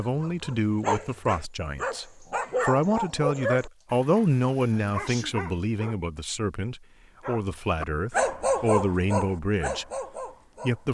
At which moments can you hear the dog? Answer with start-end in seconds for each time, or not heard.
0.0-6.0, 7.2-10.8.